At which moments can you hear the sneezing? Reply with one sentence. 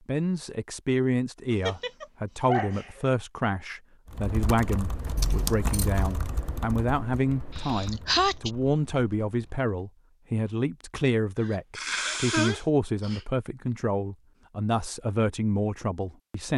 The sneezing can be heard from 1.5 to 3.1 s, from 7.5 to 8.5 s and from 11.4 to 13.2 s.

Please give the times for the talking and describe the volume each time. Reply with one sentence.
You can hear the talking from 0.1 to 16.5 s, at a steady volume.